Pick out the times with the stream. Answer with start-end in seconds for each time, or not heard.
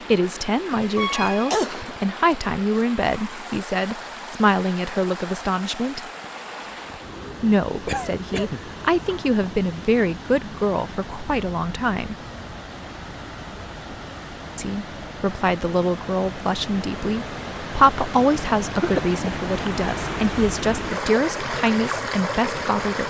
0.0-23.0.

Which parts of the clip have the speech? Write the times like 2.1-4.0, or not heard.
0.1-6.0, 7.4-12.2, 14.6-23.0.